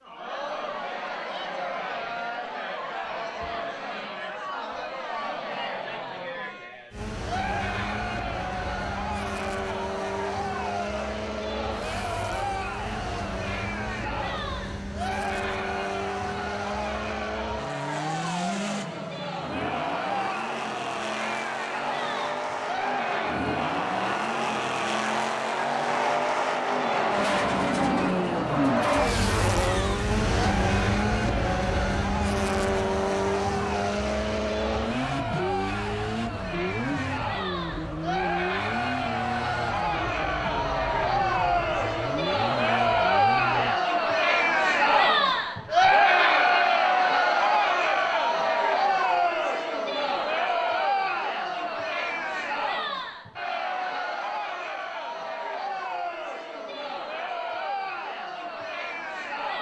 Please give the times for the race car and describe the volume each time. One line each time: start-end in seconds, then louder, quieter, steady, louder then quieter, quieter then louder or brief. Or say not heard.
6.9-43.8 louder then quieter.